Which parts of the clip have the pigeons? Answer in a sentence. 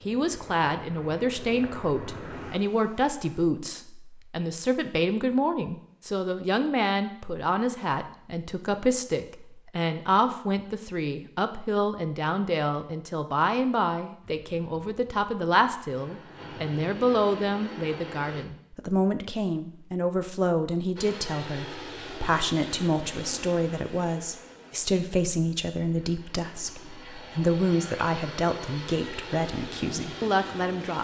You can't hear the pigeons here.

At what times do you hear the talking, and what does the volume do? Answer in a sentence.
The talking can be heard from 0.1 to 30.9 s, at a steady volume.